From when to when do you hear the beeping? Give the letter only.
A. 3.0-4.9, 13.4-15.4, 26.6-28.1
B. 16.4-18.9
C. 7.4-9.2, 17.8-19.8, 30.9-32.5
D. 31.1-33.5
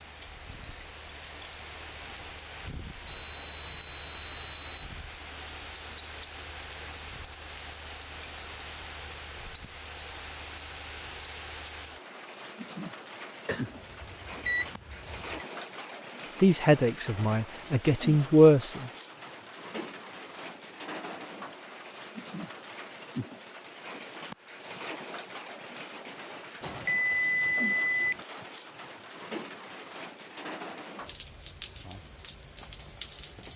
A.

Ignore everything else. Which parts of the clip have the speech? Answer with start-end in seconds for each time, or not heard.
16.4-18.9.